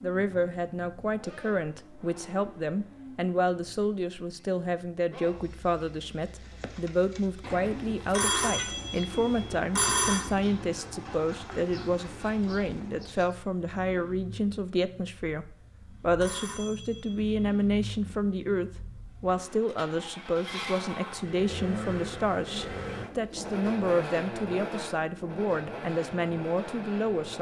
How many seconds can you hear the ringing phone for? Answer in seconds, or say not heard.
3 s.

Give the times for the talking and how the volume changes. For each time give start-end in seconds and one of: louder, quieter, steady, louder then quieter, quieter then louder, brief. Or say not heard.
0.0-27.3 steady.